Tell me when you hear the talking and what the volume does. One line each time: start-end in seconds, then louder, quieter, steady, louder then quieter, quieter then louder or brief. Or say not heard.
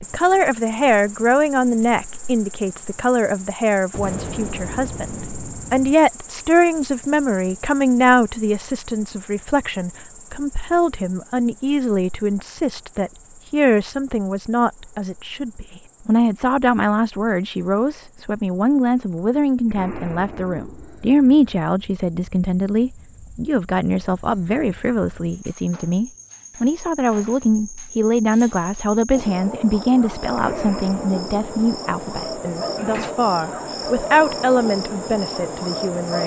0.0-36.2 steady.